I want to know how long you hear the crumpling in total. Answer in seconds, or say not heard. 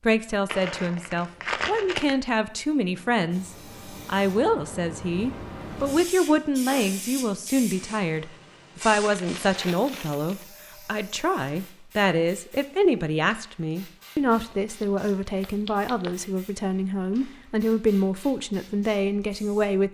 5 s.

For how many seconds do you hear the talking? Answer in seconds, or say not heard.
20 s.